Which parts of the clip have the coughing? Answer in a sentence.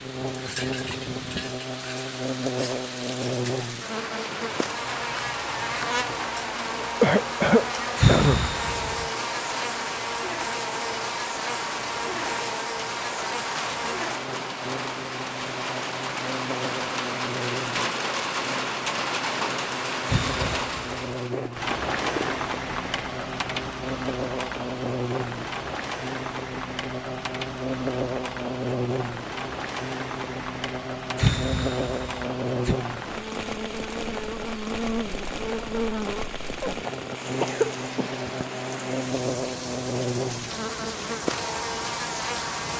You can hear the coughing from 7.0 to 8.4 s, from 21.3 to 22.4 s and from 36.6 to 38.5 s.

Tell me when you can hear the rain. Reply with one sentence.
You can hear the rain from 0.0 to 42.7 s.